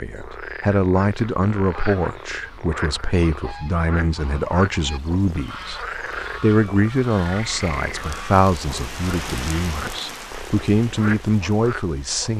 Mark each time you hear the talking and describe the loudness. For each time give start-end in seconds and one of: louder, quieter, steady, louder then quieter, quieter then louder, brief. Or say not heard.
0.0-12.3 steady.